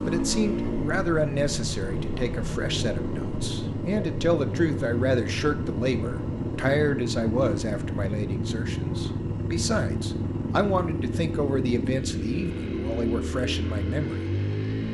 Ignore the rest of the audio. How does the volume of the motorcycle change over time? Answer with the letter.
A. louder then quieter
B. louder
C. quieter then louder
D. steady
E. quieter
D.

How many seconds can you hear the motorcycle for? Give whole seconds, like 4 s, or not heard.
15 s.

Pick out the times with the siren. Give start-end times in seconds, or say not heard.
not heard.